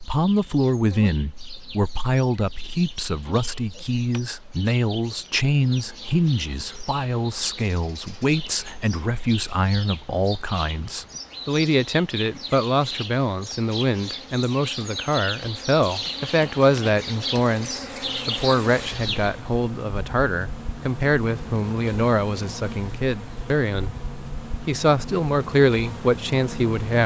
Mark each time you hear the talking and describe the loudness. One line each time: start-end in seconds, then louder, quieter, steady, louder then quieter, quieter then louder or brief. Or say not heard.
0.0-27.0 steady.